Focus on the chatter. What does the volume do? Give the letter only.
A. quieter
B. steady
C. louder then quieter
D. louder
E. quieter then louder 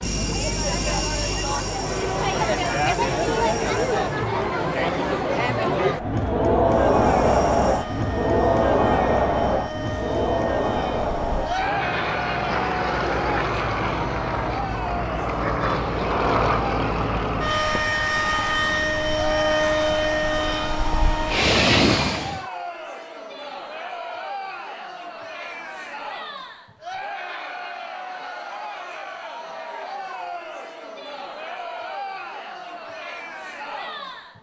A.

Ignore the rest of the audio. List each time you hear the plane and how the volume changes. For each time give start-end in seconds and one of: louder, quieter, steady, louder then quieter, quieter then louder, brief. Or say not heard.
0.0-4.3 quieter
6.7-22.4 louder.